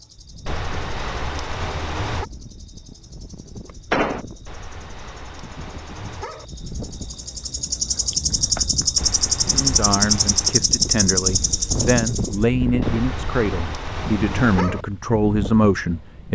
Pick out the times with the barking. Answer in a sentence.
You can hear the barking from 0.5 to 2.2 s, from 4.5 to 6.5 s, from 8.9 to 10.6 s and from 12.8 to 14.8 s.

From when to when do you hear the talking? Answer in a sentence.
You can hear the talking from 9.5 to 16.3 s.